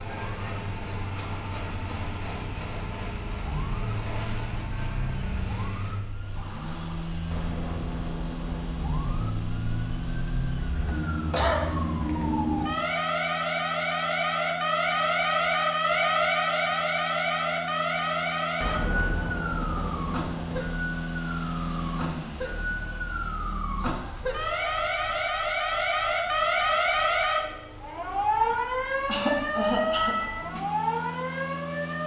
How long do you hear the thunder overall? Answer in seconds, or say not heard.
4 s.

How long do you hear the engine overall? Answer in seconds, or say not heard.
32 s.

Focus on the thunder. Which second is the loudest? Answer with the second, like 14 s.
19 s.